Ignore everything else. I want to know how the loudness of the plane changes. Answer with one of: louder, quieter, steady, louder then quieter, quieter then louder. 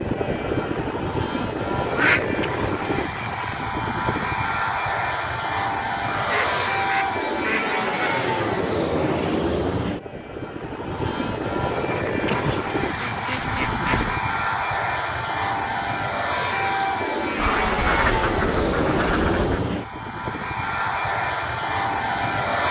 steady.